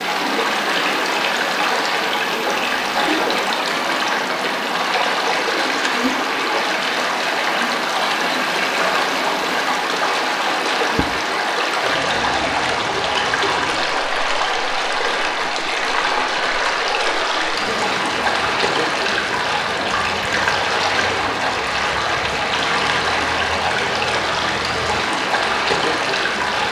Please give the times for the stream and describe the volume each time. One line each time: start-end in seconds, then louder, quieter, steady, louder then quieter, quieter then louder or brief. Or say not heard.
0.0-26.6 steady.